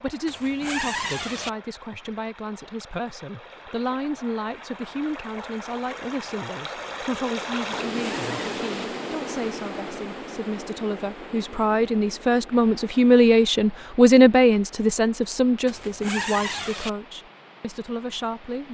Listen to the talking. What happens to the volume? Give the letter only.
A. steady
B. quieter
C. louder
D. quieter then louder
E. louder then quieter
E.